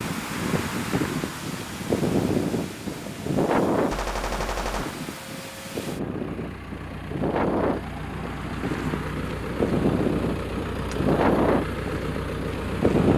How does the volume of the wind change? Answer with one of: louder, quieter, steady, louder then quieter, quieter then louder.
steady.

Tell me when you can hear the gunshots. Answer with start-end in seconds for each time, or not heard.
3.9-5.0.